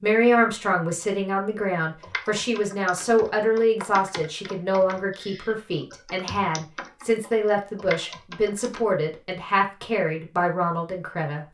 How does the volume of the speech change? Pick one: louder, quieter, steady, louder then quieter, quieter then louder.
steady.